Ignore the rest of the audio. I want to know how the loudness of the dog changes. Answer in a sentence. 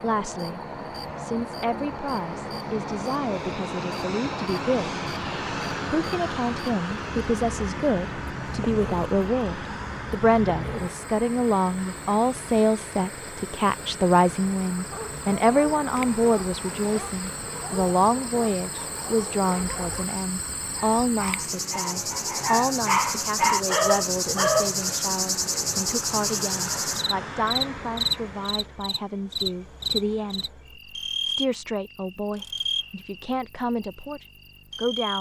The volume of the dog goes up.